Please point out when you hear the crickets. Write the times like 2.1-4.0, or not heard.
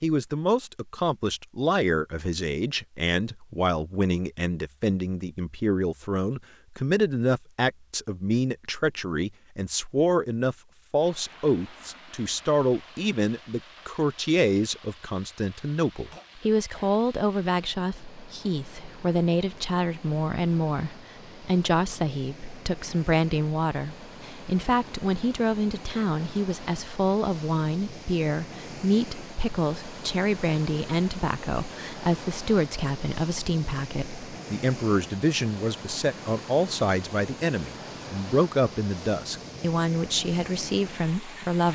not heard.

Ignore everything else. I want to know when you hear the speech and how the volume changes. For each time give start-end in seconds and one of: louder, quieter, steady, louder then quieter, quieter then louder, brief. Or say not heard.
0.0-41.7 steady.